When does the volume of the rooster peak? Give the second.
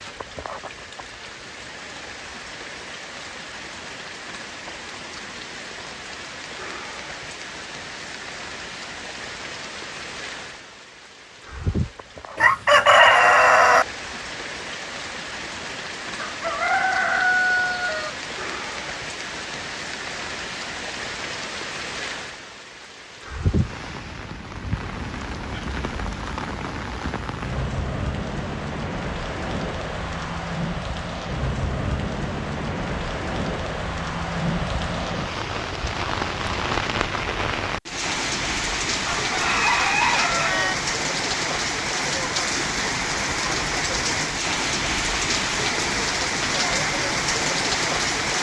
13 s.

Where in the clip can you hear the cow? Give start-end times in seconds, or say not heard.
not heard.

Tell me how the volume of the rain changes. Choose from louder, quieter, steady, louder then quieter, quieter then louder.
louder.